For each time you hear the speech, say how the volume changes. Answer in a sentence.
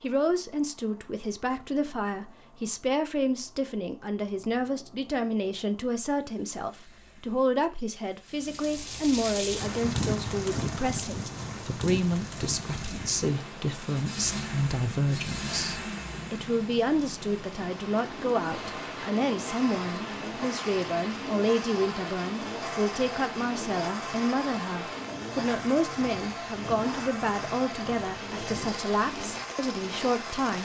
The speech can be heard from 0.0 to 30.6 s, at a steady volume.